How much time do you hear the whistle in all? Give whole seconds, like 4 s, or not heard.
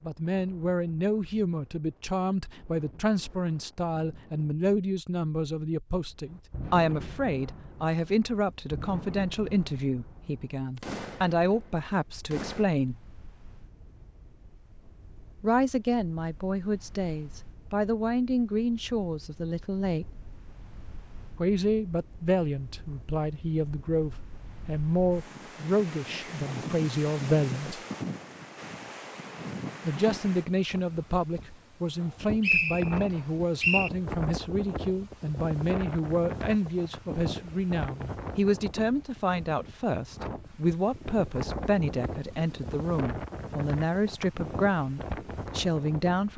2 s.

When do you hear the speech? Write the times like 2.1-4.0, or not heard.
0.0-12.9, 15.4-20.1, 21.4-27.8, 29.8-46.3.